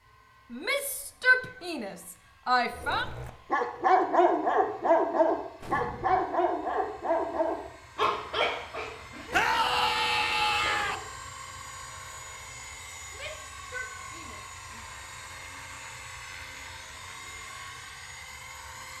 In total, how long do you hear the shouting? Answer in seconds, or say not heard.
6 s.